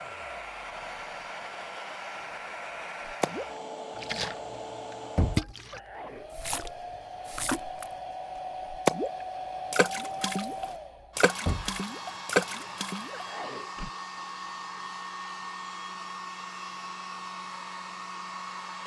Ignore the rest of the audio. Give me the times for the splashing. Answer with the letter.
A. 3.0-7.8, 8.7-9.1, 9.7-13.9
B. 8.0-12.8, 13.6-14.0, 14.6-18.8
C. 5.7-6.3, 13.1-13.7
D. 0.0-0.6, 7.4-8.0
A.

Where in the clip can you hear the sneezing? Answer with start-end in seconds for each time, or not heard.
5.7-6.3, 13.1-13.7.